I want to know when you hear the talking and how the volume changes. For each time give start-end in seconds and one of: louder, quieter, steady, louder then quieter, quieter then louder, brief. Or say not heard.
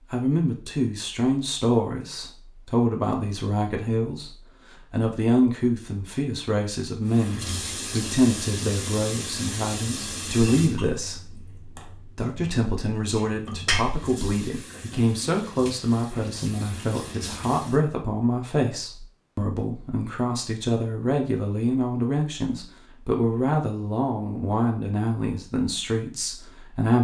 0.1-26.9 steady.